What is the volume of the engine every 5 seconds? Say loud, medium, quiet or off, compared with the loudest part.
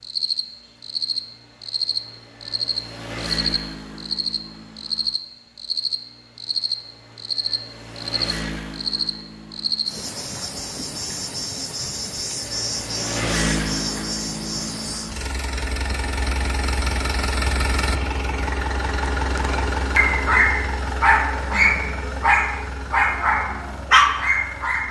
medium, medium, loud, loud, medium.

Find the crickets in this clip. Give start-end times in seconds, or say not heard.
0.0-15.2.